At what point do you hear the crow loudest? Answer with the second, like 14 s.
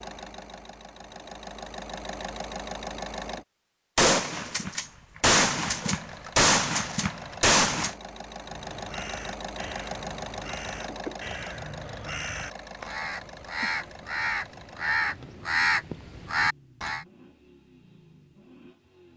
16 s.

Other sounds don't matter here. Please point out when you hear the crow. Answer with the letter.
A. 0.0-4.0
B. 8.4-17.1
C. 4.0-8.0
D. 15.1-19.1
B.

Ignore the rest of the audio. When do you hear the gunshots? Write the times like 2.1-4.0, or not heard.
4.0-8.0.